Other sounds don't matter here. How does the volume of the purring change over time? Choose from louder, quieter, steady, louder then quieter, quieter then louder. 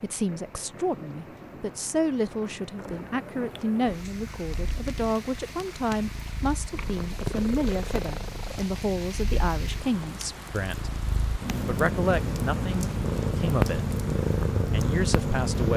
louder.